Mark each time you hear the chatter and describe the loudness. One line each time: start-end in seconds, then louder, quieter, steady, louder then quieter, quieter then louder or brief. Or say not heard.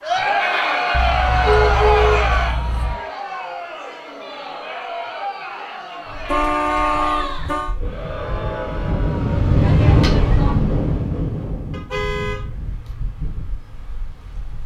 0.0-10.6 quieter.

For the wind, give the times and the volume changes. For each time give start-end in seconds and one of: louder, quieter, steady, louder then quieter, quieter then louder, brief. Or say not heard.
6.0-14.6 louder then quieter.